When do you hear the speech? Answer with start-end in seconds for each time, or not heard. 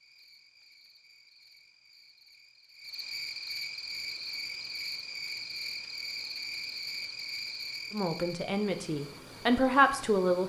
7.9-10.4.